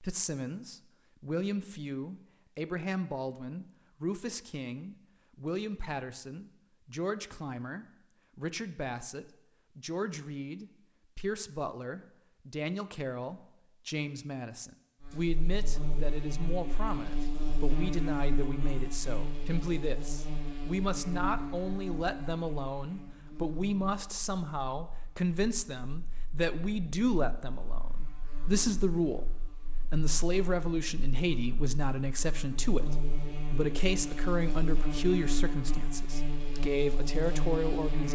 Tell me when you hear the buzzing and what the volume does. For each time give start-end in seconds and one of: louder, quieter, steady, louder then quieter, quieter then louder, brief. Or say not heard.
15.0-38.1 quieter then louder.